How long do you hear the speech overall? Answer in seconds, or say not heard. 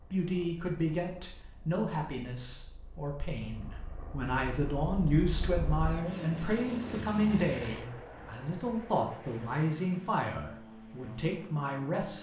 12 s.